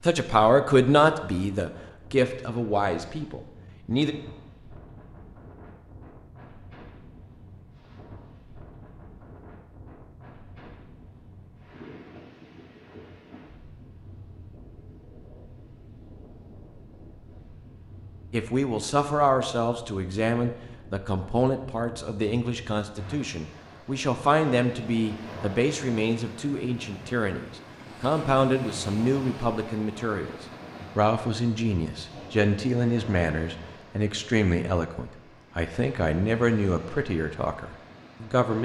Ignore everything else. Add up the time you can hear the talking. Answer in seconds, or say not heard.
24 s.